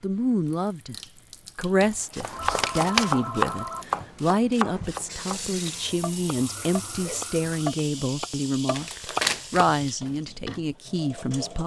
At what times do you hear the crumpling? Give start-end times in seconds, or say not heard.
1.8-3.1, 8.8-9.7.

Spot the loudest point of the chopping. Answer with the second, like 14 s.
3 s.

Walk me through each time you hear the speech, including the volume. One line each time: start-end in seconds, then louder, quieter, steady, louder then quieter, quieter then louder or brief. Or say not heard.
0.0-0.9 brief
1.6-11.6 steady.